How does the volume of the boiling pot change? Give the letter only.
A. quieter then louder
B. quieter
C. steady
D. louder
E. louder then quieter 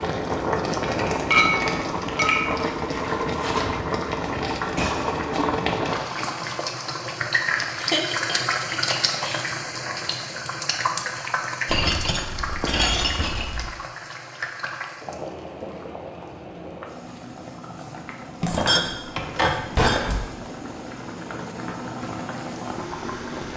B.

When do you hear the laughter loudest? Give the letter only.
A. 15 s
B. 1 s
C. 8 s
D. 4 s
C.